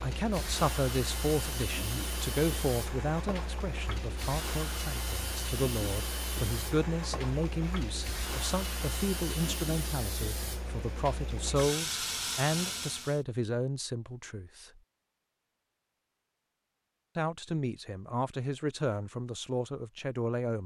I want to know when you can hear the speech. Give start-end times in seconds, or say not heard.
0.0-14.8, 17.1-20.6.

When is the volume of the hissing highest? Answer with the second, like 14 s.
12 s.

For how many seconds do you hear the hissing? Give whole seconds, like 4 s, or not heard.
13 s.